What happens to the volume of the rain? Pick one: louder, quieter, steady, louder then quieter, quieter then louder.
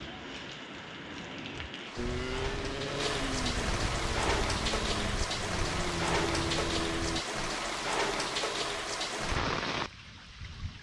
louder.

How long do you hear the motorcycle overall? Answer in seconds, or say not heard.
5 s.